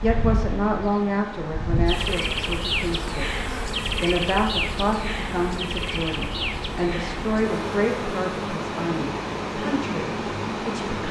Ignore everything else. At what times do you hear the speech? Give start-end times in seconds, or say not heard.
0.0-11.0.